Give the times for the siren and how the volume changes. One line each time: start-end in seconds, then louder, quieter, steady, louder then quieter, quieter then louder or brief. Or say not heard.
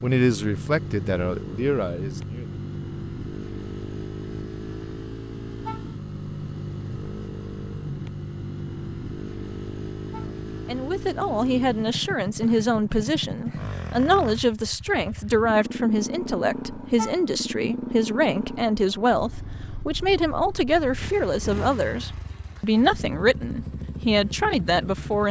not heard.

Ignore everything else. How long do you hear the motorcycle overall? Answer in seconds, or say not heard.
25 s.